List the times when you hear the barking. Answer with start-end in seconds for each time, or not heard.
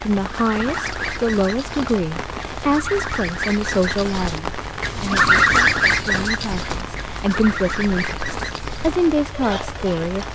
not heard.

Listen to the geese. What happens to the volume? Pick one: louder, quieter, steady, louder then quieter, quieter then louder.
louder then quieter.